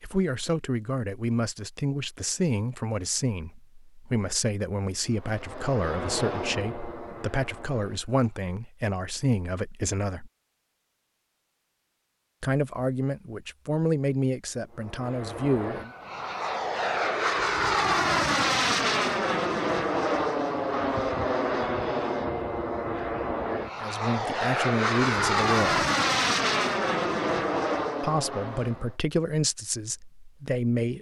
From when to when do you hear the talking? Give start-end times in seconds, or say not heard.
0.0-10.3, 12.4-15.9, 23.8-25.9, 28.0-30.9.